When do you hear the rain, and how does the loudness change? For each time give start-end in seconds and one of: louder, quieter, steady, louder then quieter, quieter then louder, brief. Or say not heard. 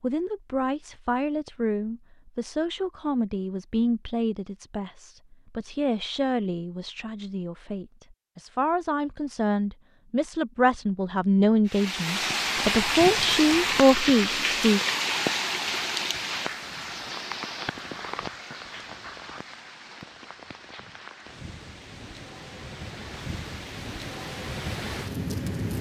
11.7-25.7 quieter then louder.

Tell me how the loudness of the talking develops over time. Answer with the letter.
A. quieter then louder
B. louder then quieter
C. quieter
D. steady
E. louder
E.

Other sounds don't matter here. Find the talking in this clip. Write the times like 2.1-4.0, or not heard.
0.0-14.8.